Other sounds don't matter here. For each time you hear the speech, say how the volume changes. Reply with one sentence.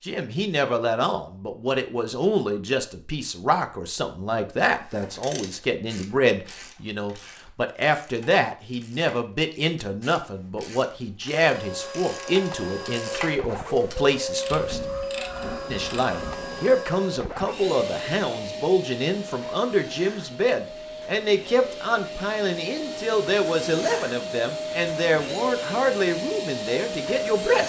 The speech can be heard from 0.0 to 14.8 s, at a steady volume; and from 15.7 to 27.6 s, at a steady volume.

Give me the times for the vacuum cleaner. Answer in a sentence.
You can hear the vacuum cleaner from 11.4 to 27.6 s.